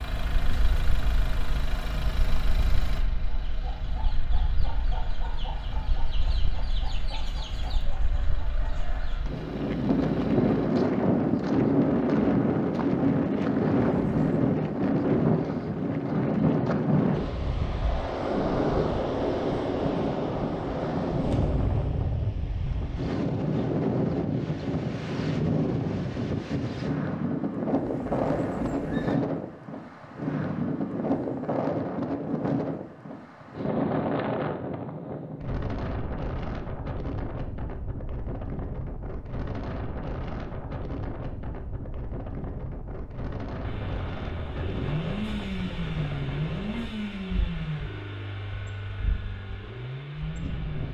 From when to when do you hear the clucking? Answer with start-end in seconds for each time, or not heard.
3.5-9.3.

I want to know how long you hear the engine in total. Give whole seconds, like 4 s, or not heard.
18 s.